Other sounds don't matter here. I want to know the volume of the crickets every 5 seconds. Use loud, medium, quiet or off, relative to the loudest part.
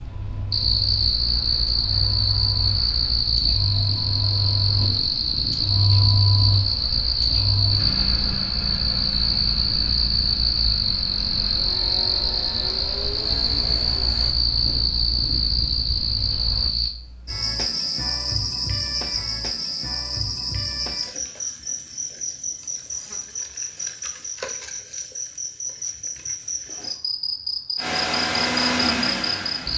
loud, loud, loud, loud, medium, medium.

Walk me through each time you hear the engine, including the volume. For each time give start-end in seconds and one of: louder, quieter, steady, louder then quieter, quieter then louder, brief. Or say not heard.
0.0-14.3 louder then quieter
27.8-29.7 brief.